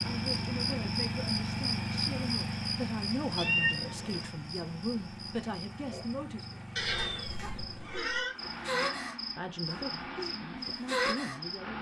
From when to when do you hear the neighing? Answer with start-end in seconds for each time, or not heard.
6.8-8.3.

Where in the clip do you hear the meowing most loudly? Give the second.
4 s.